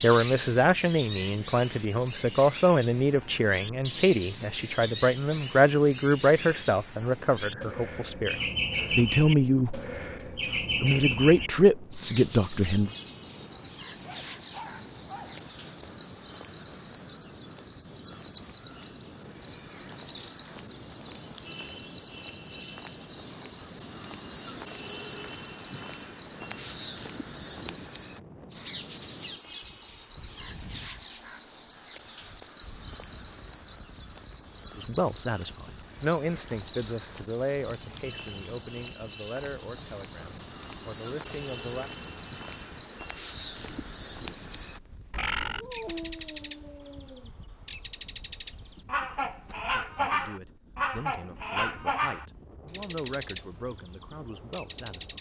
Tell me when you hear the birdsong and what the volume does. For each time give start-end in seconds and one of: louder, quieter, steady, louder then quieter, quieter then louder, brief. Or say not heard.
0.0-46.6 steady
47.6-53.5 steady
54.5-55.1 brief.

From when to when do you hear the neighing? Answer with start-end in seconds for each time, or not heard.
not heard.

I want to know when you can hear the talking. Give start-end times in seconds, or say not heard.
0.0-9.8, 10.8-12.9, 34.8-41.9, 49.5-55.1.